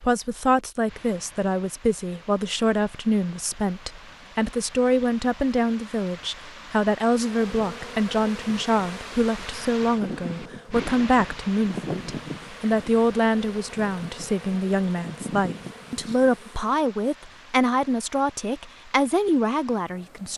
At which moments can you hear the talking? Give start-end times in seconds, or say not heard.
0.0-20.3.